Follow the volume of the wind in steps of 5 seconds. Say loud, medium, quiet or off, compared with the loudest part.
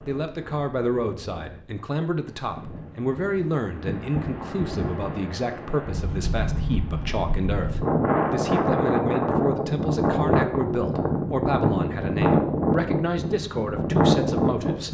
quiet, loud, loud.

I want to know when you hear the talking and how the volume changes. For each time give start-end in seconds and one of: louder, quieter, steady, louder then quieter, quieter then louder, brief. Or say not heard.
0.0-14.9 steady.